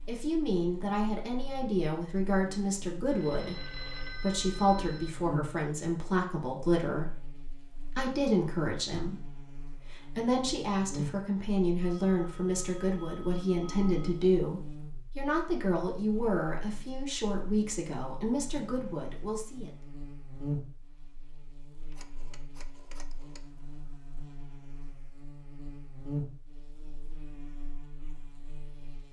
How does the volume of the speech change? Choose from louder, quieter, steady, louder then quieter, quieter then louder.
steady.